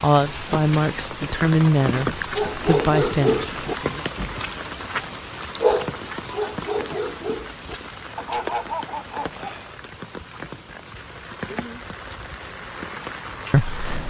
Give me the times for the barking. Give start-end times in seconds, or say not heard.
2.3-9.8.